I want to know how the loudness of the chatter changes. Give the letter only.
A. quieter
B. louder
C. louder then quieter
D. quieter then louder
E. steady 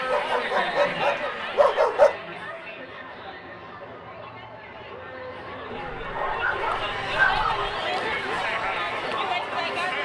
D.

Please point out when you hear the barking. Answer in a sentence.
You can hear the barking from 0.1 to 2.1 s and from 5.7 to 7.8 s.